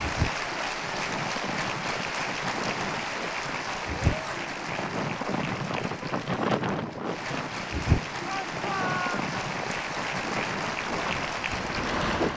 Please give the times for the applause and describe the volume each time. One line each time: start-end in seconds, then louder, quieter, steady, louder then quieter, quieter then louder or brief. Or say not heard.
0.0-12.3 quieter then louder.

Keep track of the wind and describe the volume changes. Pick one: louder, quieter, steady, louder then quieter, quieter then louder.
louder then quieter.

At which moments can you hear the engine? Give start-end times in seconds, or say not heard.
10.8-12.3.